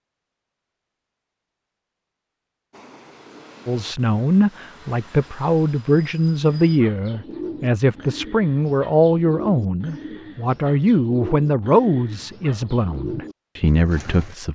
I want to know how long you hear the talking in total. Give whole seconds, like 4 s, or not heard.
11 s.